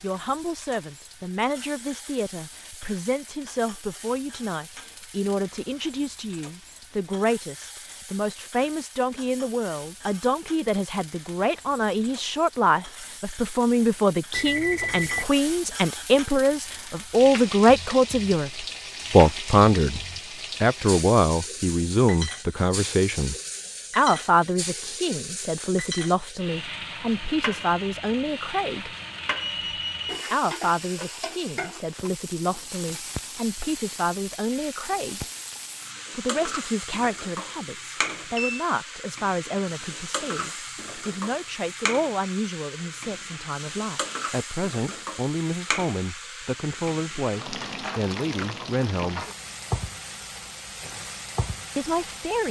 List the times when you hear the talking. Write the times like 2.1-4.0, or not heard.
0.0-20.0, 20.6-23.4, 23.9-28.9, 30.3-35.2, 36.1-49.2, 51.8-52.4.